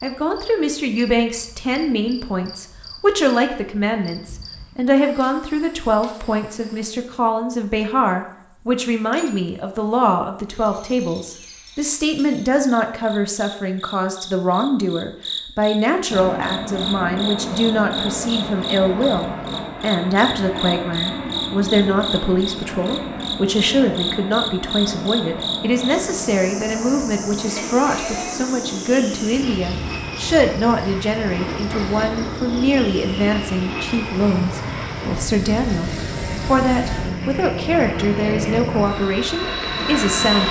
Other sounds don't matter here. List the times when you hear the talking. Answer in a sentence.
The talking can be heard from 0.0 to 40.4 s.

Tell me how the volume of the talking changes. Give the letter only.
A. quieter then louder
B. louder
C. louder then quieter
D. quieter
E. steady
E.